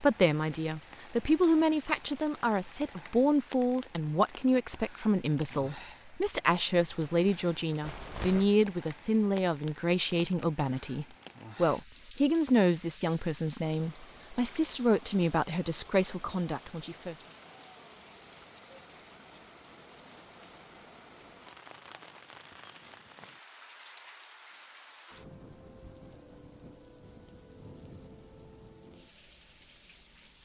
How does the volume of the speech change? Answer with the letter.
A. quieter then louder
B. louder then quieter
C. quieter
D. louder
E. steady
E.